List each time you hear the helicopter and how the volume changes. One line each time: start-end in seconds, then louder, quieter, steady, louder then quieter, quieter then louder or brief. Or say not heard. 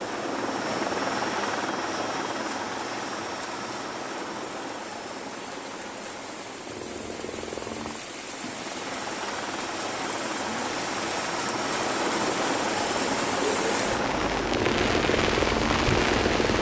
0.0-16.5 quieter then louder.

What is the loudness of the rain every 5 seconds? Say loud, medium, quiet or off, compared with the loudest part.
quiet, quiet, medium, loud.